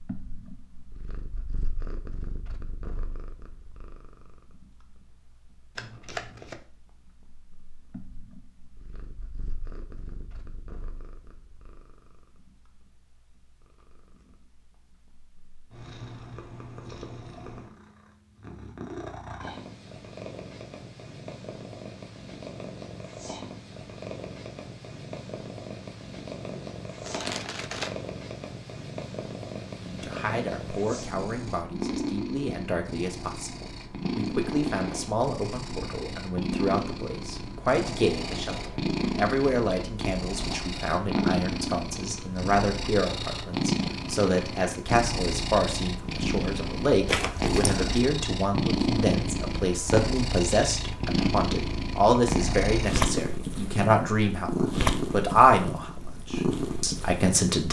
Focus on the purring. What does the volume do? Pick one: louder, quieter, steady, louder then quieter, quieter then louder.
louder.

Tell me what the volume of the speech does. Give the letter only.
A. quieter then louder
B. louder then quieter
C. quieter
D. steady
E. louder
E.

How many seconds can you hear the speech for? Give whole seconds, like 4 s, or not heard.
28 s.